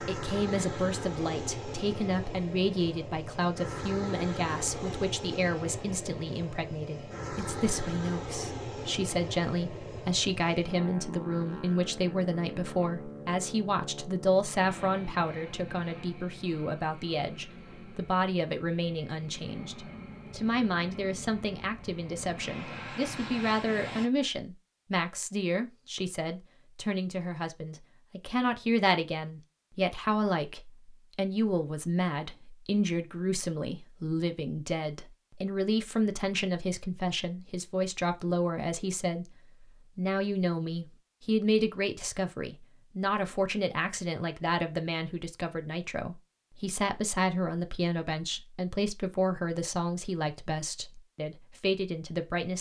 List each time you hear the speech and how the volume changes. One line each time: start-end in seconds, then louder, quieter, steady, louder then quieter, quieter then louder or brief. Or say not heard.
0.0-52.5 steady.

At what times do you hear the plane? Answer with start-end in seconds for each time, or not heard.
0.0-24.1.